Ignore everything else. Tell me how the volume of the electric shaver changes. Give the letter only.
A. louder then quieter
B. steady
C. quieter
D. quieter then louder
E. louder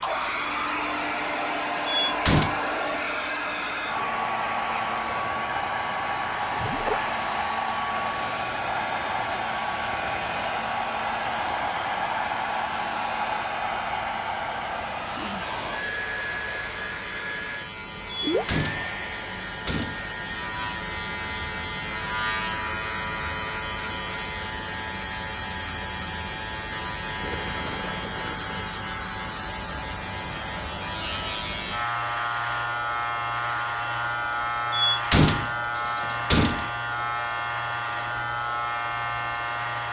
E.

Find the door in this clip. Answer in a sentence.
You can hear the door from 1.9 to 2.6 s, from 18.3 to 20.1 s and from 34.7 to 36.7 s.